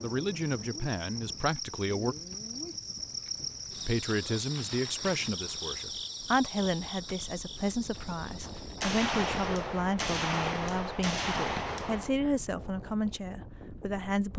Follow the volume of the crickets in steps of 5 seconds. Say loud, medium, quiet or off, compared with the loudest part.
loud, loud, off.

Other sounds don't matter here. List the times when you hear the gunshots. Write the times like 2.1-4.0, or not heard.
8.8-12.2.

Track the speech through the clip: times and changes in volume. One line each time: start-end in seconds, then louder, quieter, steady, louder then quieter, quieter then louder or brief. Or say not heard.
0.0-2.1 brief
3.9-14.3 steady.